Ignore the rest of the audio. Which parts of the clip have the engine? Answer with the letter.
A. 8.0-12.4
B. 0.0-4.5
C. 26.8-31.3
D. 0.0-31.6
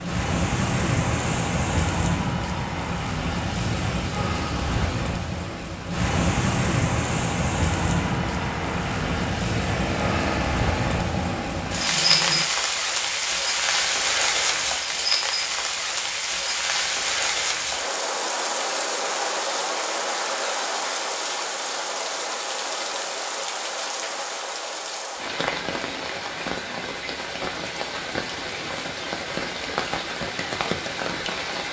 A.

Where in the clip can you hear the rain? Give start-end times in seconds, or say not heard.
0.0-31.6.